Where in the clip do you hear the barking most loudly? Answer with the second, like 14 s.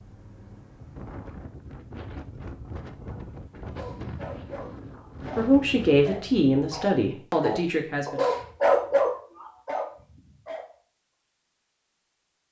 9 s.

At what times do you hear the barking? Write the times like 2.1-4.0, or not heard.
3.1-10.7.